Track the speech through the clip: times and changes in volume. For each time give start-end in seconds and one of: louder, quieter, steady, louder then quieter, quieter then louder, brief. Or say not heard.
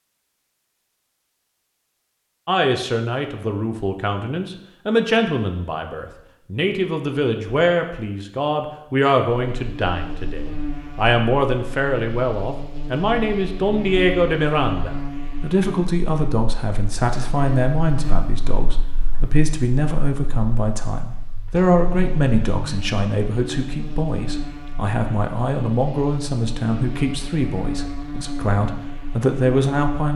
2.5-30.1 steady.